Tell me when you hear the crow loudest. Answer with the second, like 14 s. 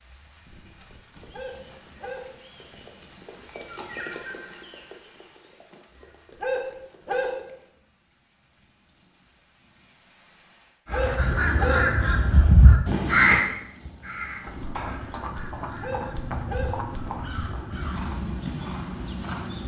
13 s.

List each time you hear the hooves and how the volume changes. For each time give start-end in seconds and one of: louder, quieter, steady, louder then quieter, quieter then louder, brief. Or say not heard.
0.8-7.7 louder then quieter
14.4-19.6 steady.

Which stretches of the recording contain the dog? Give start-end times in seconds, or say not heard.
1.3-2.2, 6.4-7.3, 10.9-11.8, 15.8-16.7.